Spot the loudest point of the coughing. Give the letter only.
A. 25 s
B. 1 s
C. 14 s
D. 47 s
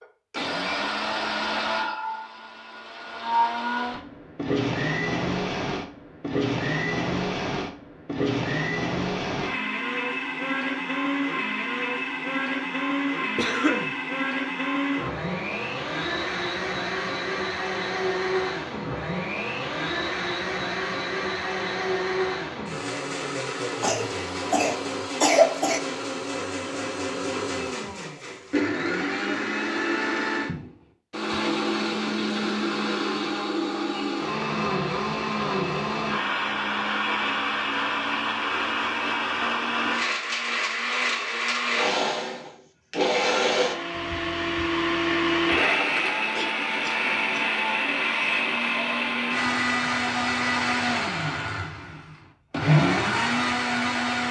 A.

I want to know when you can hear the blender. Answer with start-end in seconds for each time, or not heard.
0.0-54.2.